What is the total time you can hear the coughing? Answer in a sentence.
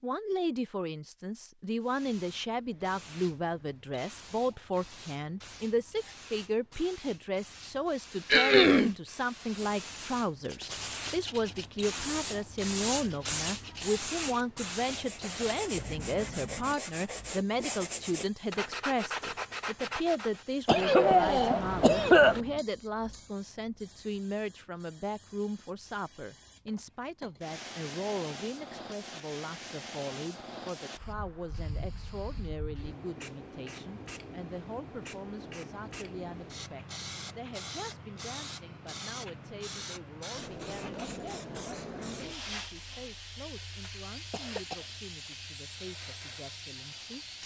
You can hear the coughing for 3 seconds altogether.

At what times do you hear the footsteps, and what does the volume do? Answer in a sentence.
You can't hear the footsteps here.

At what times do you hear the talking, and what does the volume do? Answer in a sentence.
You can hear the talking from 0.0 to 47.3 s, getting quieter.